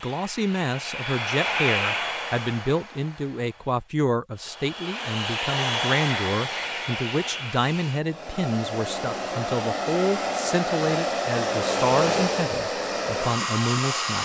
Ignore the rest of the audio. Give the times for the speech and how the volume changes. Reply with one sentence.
The speech can be heard from 0.0 to 14.2 s, at a steady volume.